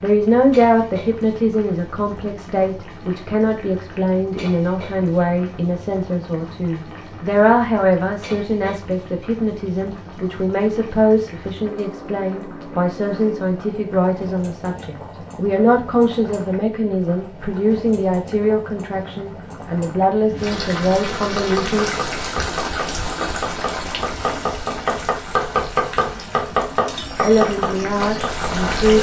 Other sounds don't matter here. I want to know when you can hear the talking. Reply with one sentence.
The talking can be heard from 0.0 to 21.9 s and from 27.2 to 28.9 s.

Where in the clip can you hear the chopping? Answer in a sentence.
You can hear the chopping from 21.2 to 28.7 s.